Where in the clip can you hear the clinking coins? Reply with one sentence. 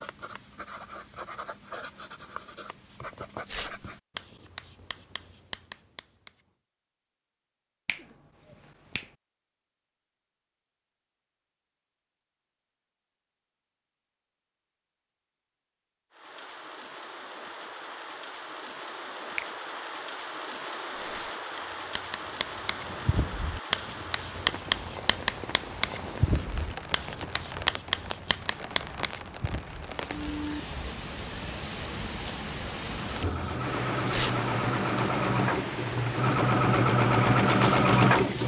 You can't hear the clinking coins here.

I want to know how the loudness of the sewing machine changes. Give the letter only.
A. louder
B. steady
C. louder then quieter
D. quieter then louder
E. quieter
A.